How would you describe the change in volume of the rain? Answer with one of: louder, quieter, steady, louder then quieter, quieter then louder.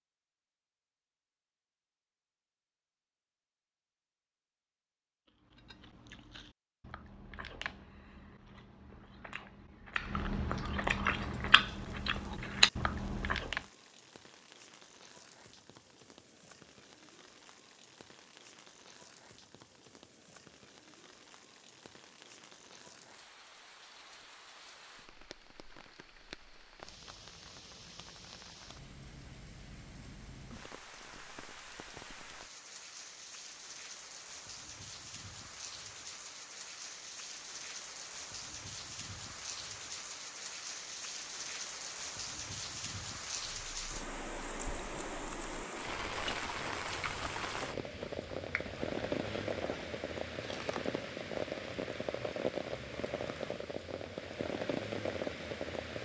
louder.